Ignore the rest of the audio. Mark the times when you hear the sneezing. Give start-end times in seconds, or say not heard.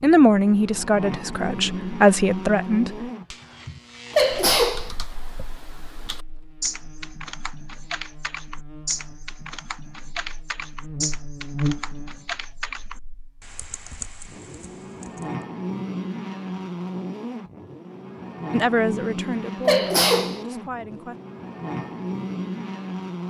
4.1-4.9, 19.6-20.4.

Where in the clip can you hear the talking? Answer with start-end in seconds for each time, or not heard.
0.0-3.0, 18.5-21.1.